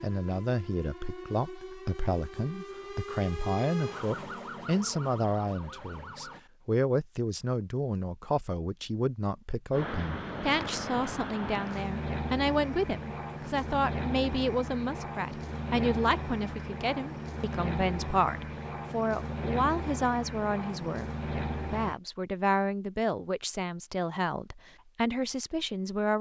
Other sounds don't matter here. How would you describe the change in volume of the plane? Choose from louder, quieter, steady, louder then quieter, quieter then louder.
steady.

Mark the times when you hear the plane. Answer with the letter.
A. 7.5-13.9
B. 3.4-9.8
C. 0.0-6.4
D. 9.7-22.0
D.